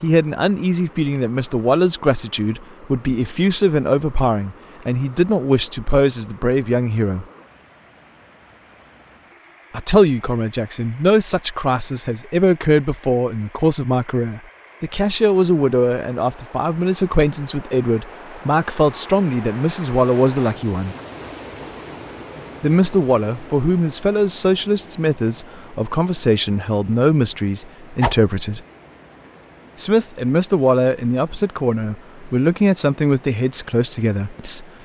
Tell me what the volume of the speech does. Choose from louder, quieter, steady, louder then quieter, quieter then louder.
steady.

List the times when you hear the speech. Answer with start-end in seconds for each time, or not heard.
0.0-7.2, 9.7-20.9, 22.6-28.6, 29.8-34.6.